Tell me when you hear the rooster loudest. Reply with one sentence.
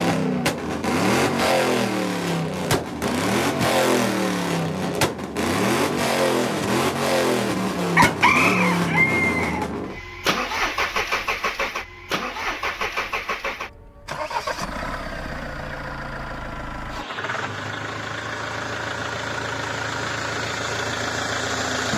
The volume of the rooster peaks at 8 seconds.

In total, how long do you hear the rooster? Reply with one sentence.
You can hear the rooster for 2 seconds altogether.